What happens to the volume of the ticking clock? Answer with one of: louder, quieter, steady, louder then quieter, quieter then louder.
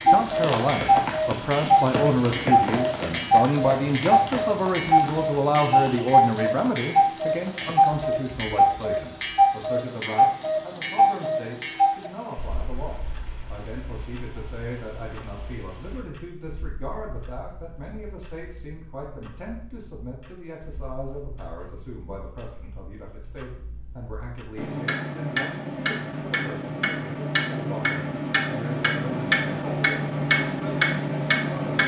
quieter then louder.